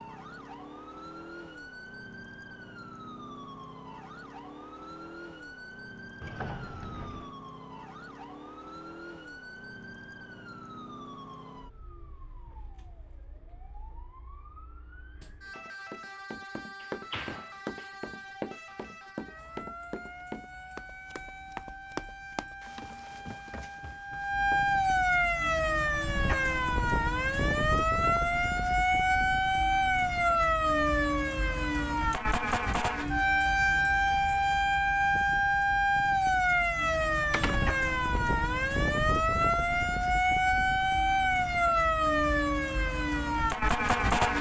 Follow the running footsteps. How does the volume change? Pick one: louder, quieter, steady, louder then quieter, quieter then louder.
quieter.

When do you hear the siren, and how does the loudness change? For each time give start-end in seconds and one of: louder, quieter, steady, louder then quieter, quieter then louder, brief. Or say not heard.
0.0-44.3 louder.